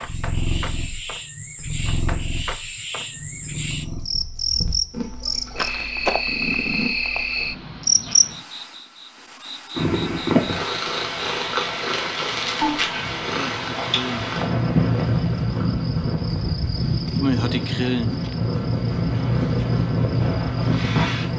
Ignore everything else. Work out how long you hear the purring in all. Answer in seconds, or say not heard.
19 s.